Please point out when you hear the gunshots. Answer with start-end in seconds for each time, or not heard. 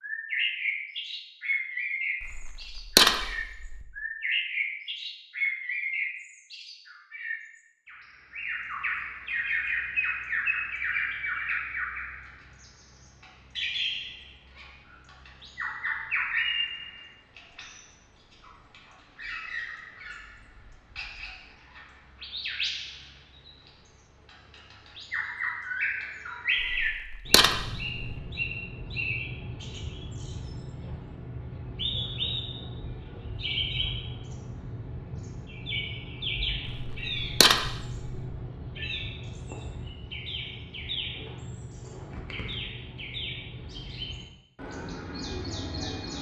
2.2-3.9, 26.6-28.2, 36.6-38.1.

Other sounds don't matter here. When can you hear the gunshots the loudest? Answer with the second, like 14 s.
3 s.